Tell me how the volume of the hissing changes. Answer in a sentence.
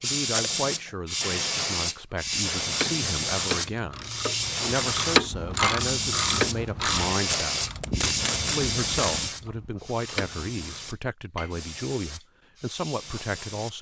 The volume of the hissing goes down.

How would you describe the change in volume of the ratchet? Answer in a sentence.
The loudness of the ratchet goes up, then down.